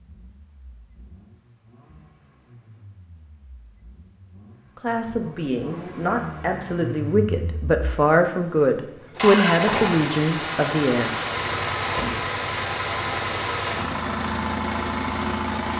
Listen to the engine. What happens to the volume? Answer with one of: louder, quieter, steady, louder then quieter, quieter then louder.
louder.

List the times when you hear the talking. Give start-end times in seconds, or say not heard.
4.8-11.2.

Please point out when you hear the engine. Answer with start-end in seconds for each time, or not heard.
0.0-15.7.